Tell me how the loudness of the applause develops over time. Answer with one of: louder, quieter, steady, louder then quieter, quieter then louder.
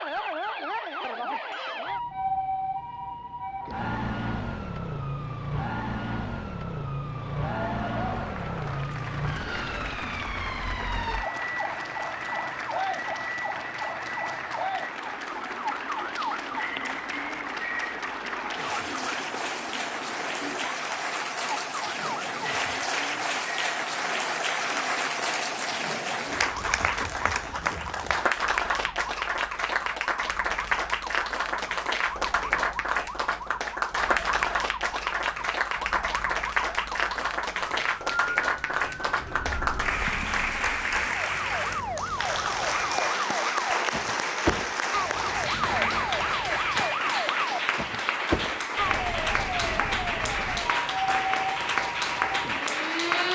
louder.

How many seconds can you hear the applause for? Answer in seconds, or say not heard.
46 s.